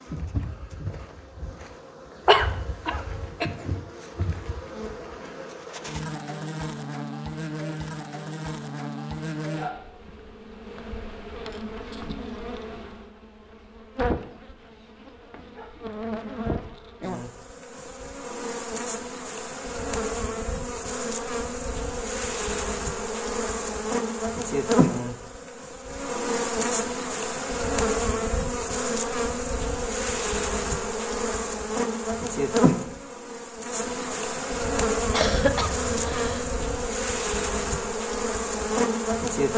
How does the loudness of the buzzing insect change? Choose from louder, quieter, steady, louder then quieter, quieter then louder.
louder.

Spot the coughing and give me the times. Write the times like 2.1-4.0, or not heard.
2.2-3.5, 35.1-36.5.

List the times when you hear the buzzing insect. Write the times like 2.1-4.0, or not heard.
0.0-39.5.